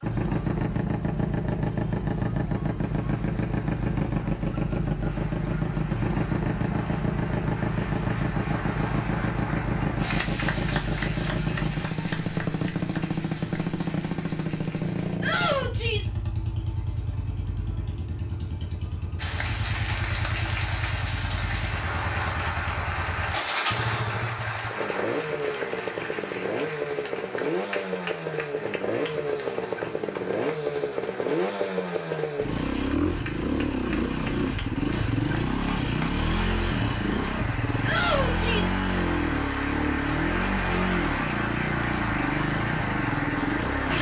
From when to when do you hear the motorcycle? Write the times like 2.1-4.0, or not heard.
0.0-43.9.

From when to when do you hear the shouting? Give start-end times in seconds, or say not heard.
15.2-16.1, 37.9-38.8.